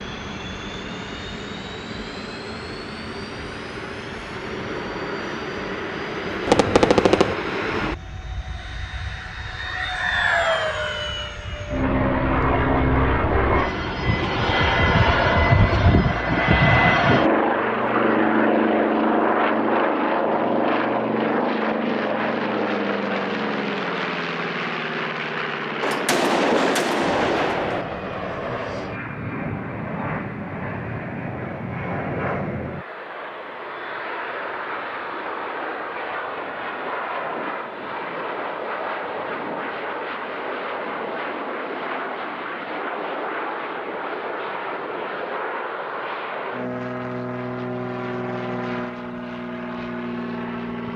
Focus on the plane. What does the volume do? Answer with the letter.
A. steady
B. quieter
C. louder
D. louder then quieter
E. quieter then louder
D.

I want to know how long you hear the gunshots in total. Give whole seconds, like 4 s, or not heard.
3 s.